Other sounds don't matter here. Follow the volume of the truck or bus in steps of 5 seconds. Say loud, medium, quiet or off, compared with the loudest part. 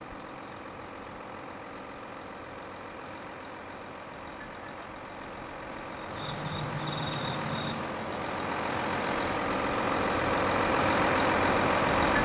quiet, medium, loud.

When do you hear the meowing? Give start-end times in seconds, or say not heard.
not heard.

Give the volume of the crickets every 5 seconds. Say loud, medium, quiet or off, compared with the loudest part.
quiet, loud, medium.